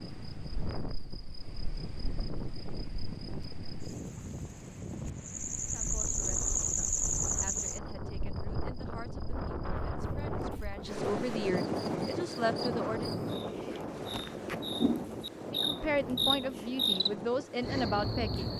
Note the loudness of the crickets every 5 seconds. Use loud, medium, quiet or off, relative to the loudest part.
quiet, loud, medium, loud.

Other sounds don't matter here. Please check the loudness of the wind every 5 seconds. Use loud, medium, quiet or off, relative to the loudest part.
medium, medium, loud, medium.